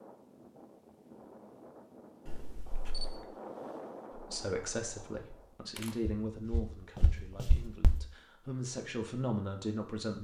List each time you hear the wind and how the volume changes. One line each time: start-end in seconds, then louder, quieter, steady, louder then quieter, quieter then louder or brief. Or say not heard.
0.0-5.7 louder then quieter.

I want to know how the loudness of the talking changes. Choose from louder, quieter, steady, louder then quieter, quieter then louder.
quieter then louder.